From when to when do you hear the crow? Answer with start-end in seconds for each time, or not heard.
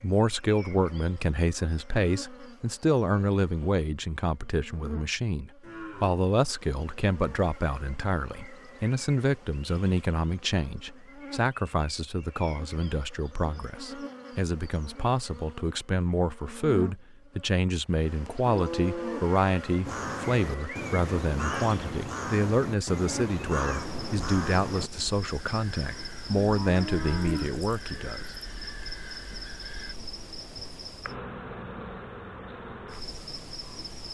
19.9-29.9.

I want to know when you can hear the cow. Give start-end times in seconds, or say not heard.
5.6-6.2, 18.4-19.2, 26.4-27.6.